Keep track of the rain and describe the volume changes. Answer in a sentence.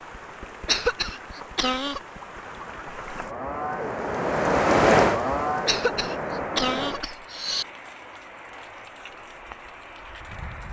The loudness of the rain goes up, then down.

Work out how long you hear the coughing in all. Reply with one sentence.
You can hear the coughing for 3 seconds altogether.